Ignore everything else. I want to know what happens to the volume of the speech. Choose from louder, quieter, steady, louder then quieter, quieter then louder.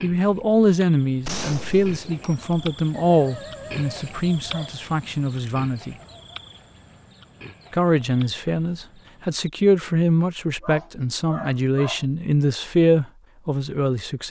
steady.